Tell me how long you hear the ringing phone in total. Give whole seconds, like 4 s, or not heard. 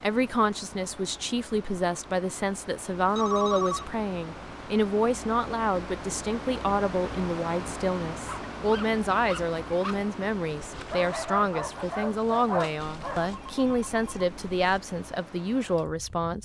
3 s.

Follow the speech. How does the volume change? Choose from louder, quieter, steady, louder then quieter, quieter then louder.
steady.